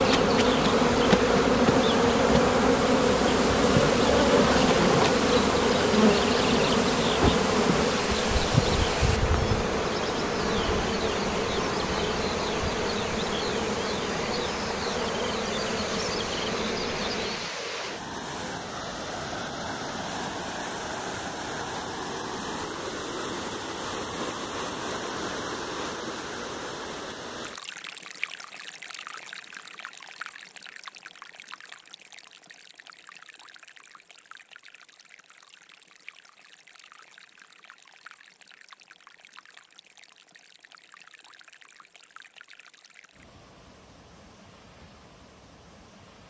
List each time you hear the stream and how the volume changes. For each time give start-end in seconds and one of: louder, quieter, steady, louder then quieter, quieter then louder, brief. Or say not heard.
0.0-46.2 quieter.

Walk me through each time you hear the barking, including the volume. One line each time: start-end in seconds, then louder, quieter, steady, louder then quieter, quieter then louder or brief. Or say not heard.
not heard.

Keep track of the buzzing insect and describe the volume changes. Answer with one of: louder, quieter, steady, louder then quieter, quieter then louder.
quieter.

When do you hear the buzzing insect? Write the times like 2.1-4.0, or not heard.
0.0-17.6.